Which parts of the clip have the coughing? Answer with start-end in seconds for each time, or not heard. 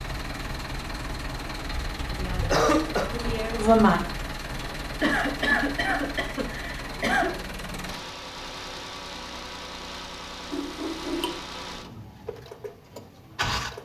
2.4-3.0, 5.0-7.3, 10.5-11.3.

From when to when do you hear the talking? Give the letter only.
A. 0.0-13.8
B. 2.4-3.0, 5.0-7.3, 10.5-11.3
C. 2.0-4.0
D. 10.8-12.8
C.